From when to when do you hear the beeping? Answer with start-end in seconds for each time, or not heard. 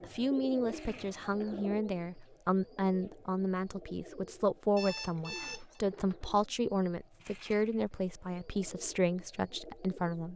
4.8-5.8.